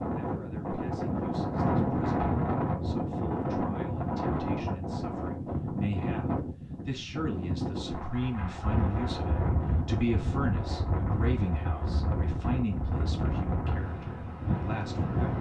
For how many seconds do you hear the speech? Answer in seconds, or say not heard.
15 s.